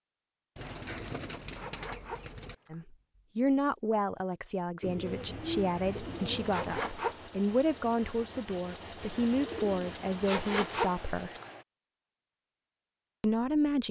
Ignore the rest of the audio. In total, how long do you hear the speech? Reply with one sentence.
You can hear the speech for 9 seconds altogether.